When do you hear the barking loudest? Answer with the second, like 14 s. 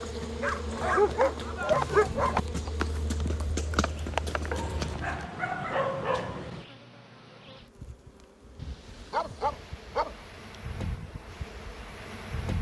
2 s.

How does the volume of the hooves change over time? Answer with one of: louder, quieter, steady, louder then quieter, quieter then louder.
louder.